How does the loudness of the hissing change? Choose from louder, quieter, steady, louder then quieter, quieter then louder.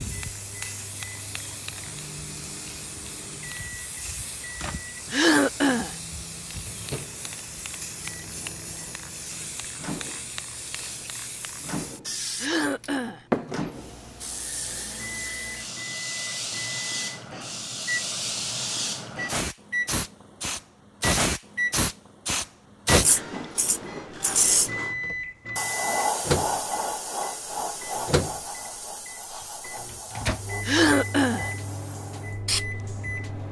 louder then quieter.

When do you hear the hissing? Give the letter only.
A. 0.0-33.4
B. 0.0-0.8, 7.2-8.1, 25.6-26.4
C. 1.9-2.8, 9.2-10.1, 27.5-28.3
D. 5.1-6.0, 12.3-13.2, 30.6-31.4
A.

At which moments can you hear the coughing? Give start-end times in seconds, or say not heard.
5.1-6.0, 12.3-13.2, 30.6-31.4.